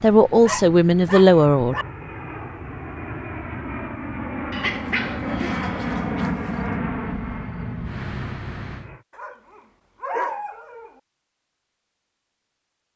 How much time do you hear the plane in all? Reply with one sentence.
The plane can be heard for 9 seconds in total.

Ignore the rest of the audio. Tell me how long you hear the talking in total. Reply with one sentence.
The talking can be heard for 2 seconds in total.